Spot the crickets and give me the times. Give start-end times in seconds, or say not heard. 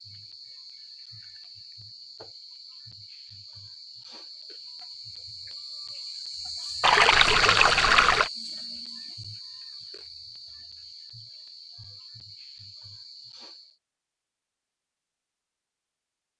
0.0-13.8.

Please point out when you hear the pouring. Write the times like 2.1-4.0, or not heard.
6.8-8.3.